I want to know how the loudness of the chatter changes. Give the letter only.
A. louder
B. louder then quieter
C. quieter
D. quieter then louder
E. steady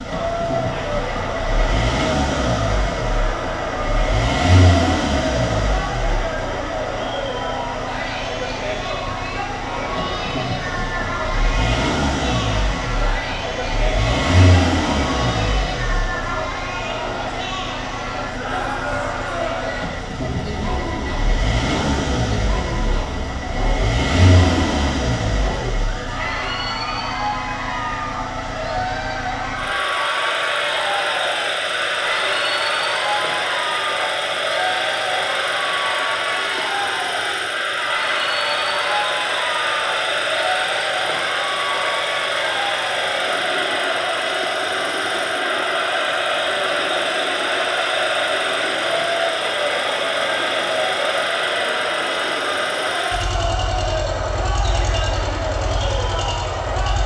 E.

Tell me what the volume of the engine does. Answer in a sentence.
The volume of the engine stays about the same.